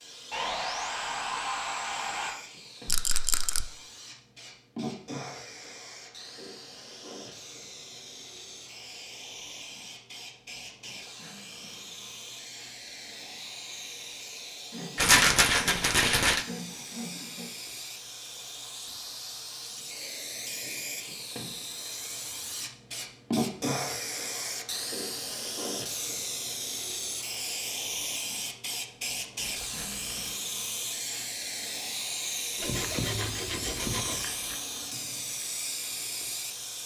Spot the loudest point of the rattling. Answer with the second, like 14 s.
15 s.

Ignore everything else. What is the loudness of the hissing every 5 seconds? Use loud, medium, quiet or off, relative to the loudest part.
medium, medium, medium, medium, loud, loud, loud, loud.